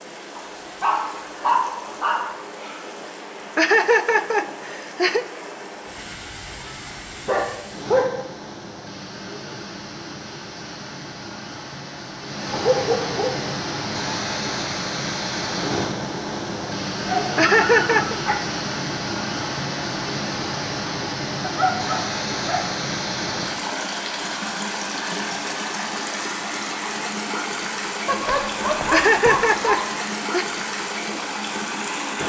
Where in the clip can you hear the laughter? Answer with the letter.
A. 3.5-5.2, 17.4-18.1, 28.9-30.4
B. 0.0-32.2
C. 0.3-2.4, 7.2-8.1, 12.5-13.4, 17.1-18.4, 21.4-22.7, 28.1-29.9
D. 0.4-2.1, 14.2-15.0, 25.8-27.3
A.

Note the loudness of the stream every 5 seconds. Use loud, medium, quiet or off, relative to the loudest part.
medium, medium, loud, loud, loud, loud, loud.